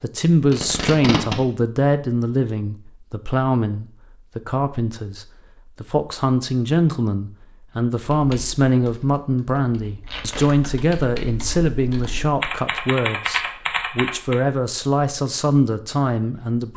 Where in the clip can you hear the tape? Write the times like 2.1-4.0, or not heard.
0.5-1.4, 10.1-10.5.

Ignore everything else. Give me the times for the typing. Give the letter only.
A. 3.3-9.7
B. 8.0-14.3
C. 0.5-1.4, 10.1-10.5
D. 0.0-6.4
B.